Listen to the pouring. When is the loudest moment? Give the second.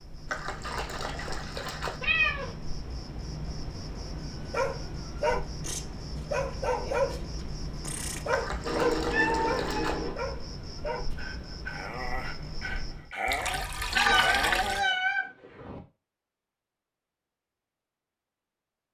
14 s.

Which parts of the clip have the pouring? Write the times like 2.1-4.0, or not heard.
0.2-2.0, 8.3-9.9, 13.2-14.8.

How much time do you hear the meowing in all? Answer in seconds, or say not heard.
4 s.